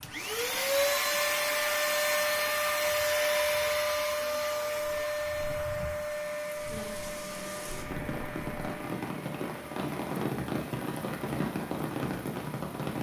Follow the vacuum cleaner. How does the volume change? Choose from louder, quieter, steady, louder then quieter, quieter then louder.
quieter.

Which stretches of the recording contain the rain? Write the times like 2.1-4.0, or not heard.
0.0-12.9.